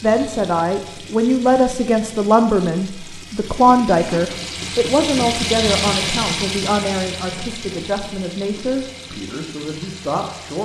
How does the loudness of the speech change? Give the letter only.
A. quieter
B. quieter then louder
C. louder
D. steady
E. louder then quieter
A.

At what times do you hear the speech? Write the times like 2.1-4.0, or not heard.
0.0-10.5.